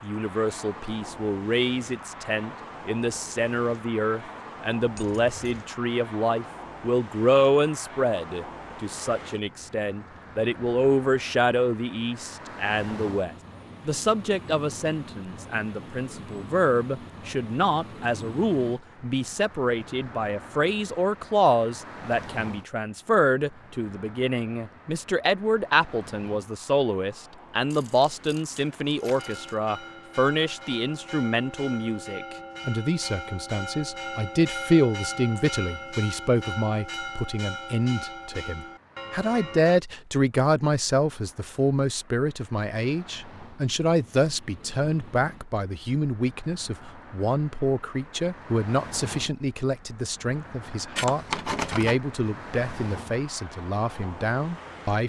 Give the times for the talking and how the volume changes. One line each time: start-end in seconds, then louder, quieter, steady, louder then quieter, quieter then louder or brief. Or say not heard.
0.0-55.0 steady.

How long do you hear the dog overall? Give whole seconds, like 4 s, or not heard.
not heard.